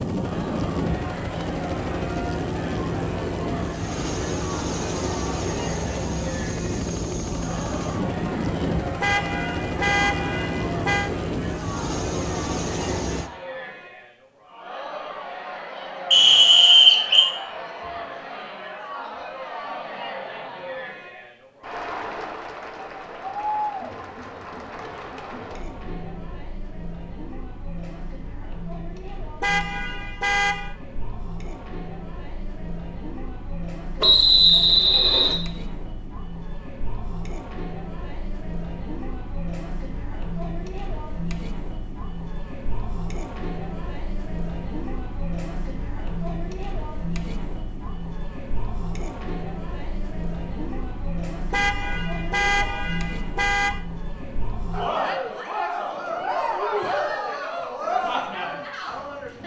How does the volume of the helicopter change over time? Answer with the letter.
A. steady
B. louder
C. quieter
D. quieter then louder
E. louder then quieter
A.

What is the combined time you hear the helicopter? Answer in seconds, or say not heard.
13 s.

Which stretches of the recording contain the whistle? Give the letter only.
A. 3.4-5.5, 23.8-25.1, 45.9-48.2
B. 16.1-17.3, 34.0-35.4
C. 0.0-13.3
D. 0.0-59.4
B.